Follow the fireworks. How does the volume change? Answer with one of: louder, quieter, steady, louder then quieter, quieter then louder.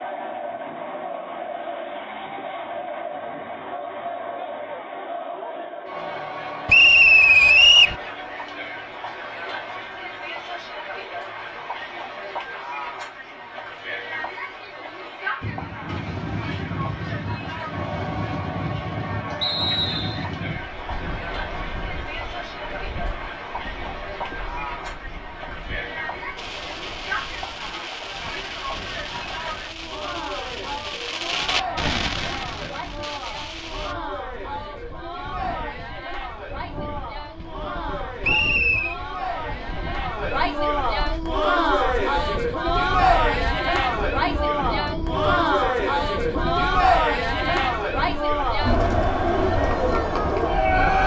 louder then quieter.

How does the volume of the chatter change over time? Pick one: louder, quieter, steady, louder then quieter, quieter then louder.
louder.